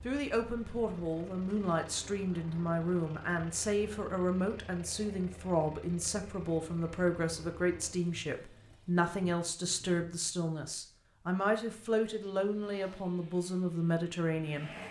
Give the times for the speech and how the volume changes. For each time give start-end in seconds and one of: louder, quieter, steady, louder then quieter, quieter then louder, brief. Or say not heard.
0.0-14.7 steady.